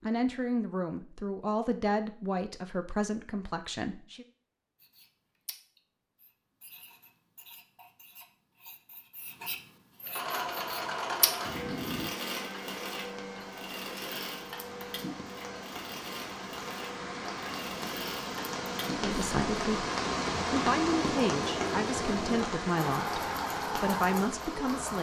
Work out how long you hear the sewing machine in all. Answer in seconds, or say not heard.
15 s.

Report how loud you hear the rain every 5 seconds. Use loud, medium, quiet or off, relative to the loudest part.
off, off, quiet, loud, loud.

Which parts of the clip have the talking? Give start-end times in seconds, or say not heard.
0.0-4.2, 18.9-19.9, 20.5-24.9.